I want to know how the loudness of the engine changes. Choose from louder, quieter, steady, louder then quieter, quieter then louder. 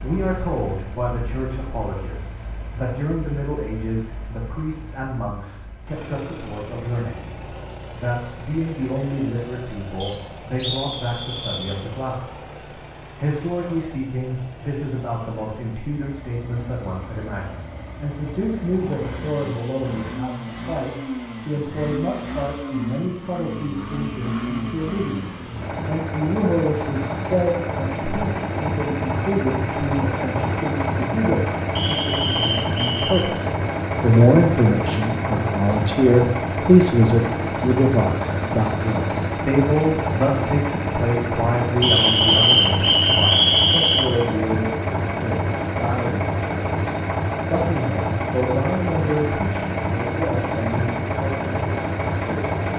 louder.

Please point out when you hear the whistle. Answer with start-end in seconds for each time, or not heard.
10.0-11.8, 31.8-33.2, 41.8-44.1.